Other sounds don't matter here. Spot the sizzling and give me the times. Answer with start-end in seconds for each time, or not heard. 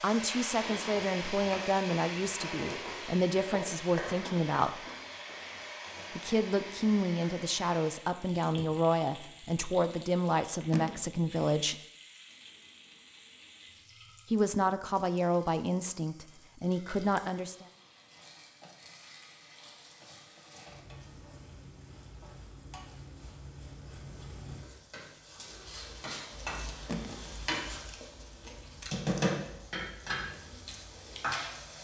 0.0-31.7.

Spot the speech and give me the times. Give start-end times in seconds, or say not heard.
0.0-4.8, 6.1-11.8, 14.3-17.6.